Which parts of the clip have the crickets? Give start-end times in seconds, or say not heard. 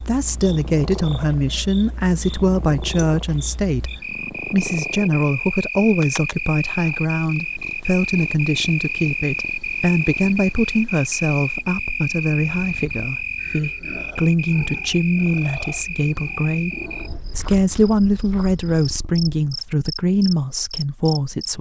0.0-21.5.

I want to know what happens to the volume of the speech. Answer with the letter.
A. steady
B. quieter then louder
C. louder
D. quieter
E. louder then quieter
A.